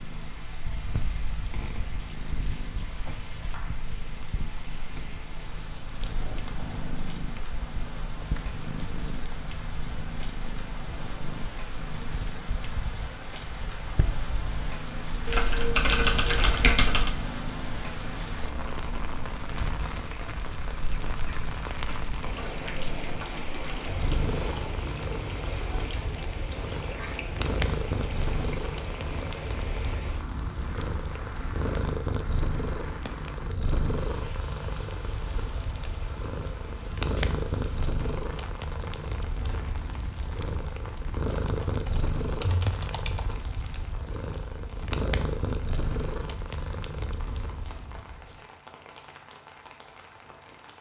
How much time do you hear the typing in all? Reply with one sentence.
You can hear the typing for 4 seconds altogether.